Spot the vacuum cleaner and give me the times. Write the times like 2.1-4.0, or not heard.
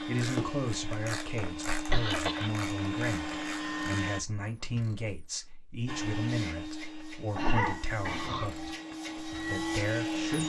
0.0-4.2, 5.8-10.4.